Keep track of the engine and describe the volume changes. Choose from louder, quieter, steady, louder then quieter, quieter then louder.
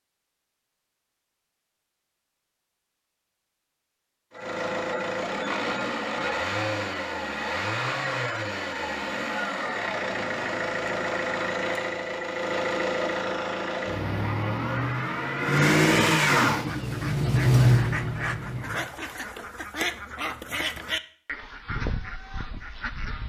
louder.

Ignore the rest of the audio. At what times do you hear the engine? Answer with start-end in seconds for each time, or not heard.
4.3-18.9.